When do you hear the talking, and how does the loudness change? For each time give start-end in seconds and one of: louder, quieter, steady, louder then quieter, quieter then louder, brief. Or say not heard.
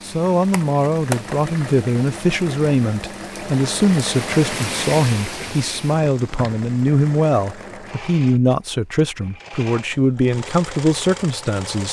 0.0-11.8 steady.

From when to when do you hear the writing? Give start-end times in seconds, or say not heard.
not heard.